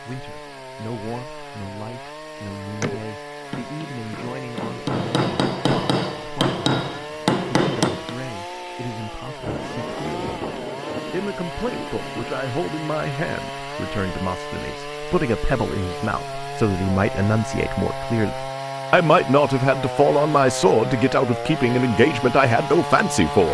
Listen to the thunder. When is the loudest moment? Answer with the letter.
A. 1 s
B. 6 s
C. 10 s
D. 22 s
C.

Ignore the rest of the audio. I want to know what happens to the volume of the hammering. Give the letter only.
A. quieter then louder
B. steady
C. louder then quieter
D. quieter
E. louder
E.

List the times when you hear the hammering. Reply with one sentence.
You can hear the hammering from 2.8 to 8.2 s.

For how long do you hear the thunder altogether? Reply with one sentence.
You can hear the thunder for 3 seconds altogether.